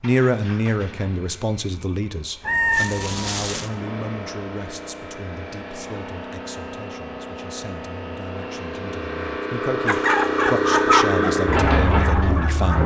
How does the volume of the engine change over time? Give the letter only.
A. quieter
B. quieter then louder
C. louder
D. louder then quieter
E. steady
C.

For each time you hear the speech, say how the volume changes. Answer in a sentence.
The speech can be heard from 0.0 to 12.8 s, getting quieter then louder.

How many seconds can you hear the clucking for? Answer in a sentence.
You can hear the clucking for 3 seconds altogether.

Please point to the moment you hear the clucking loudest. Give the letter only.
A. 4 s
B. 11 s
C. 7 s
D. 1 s
B.